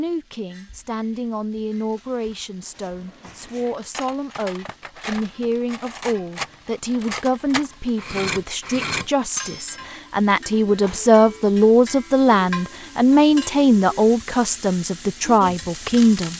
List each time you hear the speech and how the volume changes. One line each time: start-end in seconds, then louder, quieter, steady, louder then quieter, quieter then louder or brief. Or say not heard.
0.0-16.3 louder.